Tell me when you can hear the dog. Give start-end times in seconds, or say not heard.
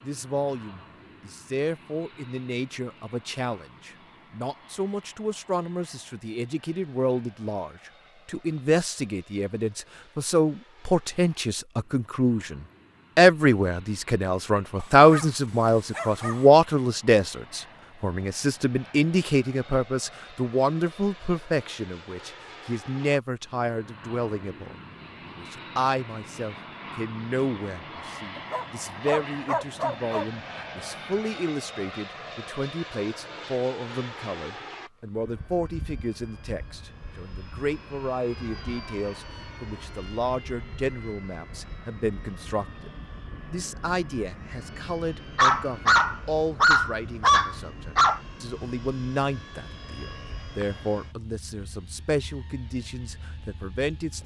14.8-16.4, 28.4-30.2, 45.4-48.2.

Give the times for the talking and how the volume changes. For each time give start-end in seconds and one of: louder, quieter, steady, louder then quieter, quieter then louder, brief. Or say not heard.
0.1-42.9 louder then quieter
43.5-54.2 steady.